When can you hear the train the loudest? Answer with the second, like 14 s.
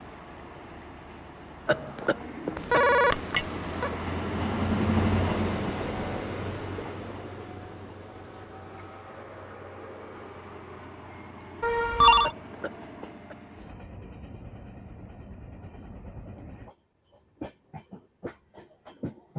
5 s.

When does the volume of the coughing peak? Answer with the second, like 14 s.
2 s.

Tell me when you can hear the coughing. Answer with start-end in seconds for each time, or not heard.
1.6-2.9, 12.2-13.3.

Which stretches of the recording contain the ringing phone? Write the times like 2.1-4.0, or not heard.
2.5-3.9, 11.6-12.3.